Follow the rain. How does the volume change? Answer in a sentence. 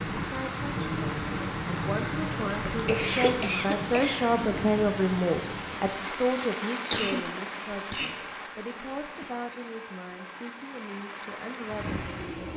The volume of the rain goes down.